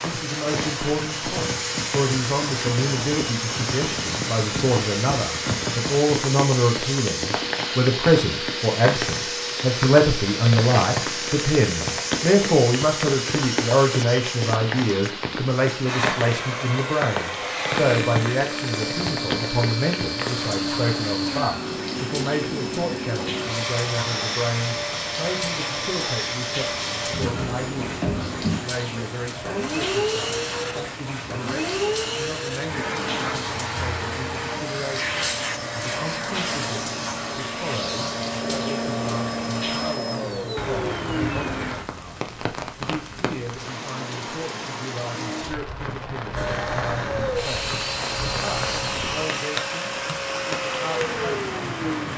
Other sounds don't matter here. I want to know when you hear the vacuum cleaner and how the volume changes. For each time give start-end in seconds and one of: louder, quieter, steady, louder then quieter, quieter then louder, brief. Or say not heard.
0.0-41.8 steady
46.4-52.0 steady.